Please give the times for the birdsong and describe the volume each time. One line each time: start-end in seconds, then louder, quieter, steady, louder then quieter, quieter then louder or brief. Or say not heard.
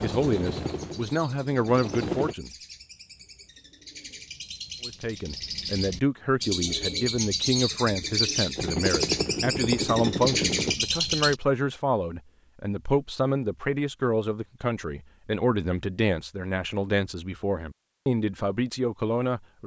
0.0-11.4 louder.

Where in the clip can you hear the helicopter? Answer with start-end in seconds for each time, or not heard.
0.0-2.4, 8.6-10.8.